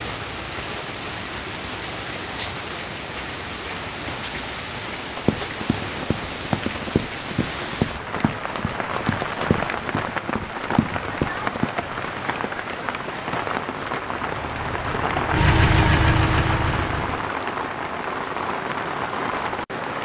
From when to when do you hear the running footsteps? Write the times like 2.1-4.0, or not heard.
5.2-11.7.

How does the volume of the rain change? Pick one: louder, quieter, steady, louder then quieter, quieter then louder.
steady.